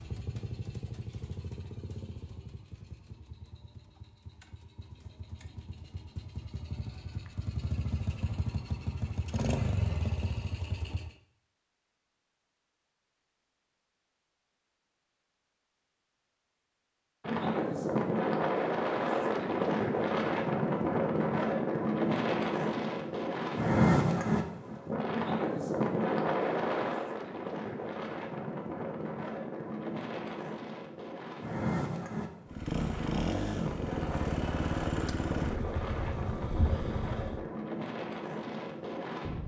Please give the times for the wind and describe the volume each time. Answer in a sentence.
You can hear the wind from 17.2 to 39.4 s, getting quieter.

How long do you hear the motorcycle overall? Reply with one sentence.
You can hear the motorcycle for 16 seconds altogether.